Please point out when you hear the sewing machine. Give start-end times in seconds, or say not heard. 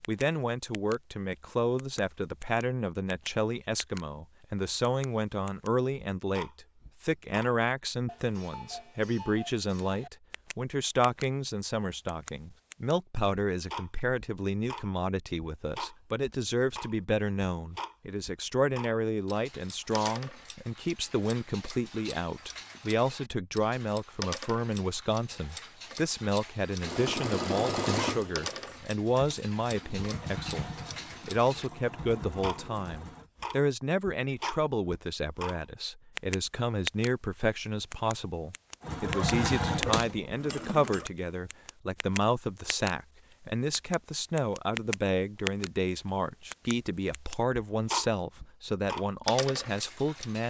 26.8-33.3, 38.8-41.0.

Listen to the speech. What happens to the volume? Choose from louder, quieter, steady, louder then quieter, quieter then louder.
steady.